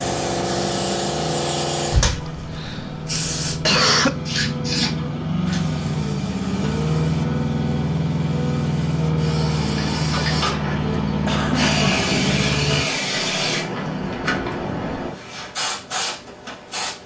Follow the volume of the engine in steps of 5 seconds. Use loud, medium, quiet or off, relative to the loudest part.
medium, loud, loud, off.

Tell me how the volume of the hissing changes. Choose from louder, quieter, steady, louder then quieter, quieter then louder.
quieter then louder.